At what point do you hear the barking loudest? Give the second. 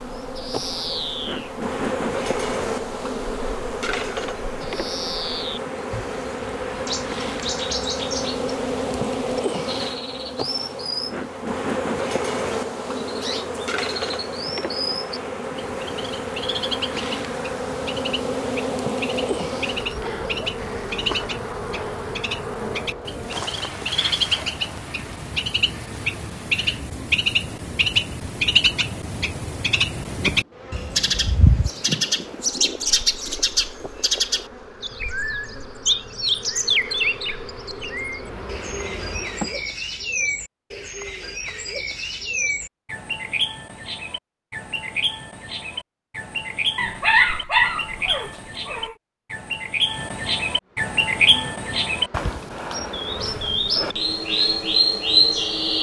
47 s.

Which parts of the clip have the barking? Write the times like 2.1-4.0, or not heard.
46.8-49.0.